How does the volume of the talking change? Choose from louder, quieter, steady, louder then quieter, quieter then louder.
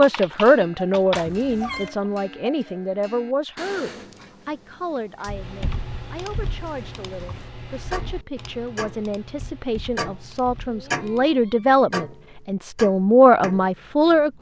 quieter then louder.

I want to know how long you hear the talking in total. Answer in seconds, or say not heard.
14 s.